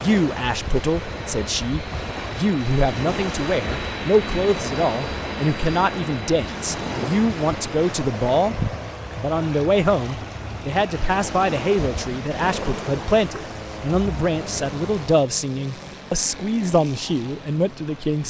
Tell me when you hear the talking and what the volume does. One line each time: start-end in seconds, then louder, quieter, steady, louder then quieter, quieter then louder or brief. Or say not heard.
0.0-18.2 steady.